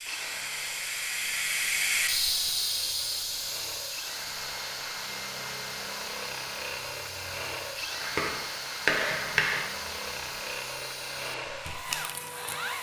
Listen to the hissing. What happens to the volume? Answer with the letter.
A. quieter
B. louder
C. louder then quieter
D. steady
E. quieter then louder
A.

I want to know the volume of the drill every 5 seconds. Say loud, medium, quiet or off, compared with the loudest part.
medium, loud, loud.